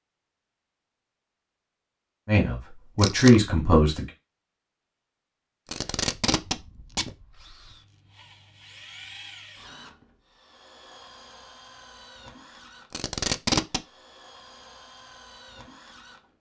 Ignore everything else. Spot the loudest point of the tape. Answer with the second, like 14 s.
13 s.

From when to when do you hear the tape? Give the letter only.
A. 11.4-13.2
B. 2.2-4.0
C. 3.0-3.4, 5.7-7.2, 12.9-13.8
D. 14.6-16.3
C.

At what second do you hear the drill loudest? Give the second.
9 s.